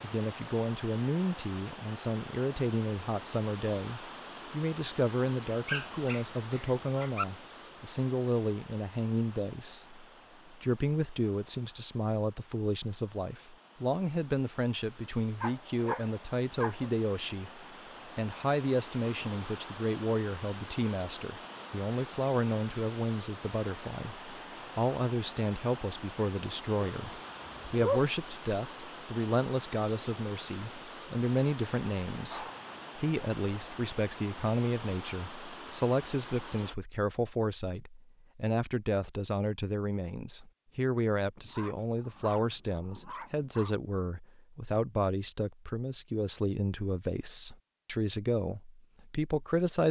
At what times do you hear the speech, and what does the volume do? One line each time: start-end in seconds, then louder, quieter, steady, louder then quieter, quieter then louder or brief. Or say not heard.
0.0-49.8 steady.